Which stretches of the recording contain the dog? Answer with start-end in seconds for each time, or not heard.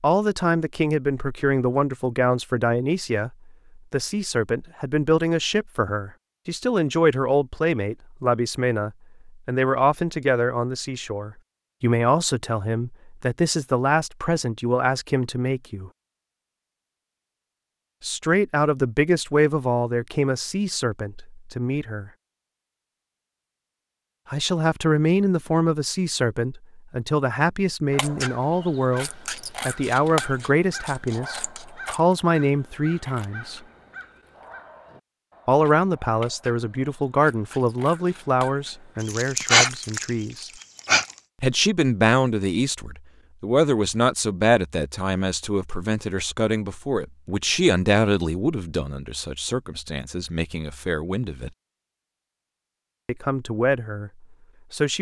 39.0-41.1.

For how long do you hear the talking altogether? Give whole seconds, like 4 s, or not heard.
46 s.